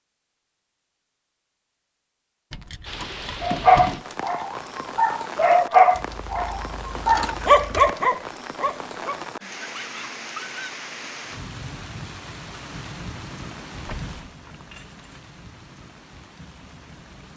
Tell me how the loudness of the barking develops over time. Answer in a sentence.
The loudness of the barking goes up, then down.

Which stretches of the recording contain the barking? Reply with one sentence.
You can hear the barking from 3.4 to 10.8 s.